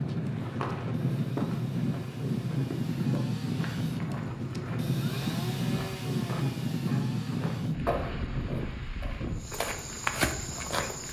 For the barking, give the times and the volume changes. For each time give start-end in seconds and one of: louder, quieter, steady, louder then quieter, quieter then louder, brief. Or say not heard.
not heard.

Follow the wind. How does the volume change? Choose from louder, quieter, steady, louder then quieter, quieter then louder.
quieter.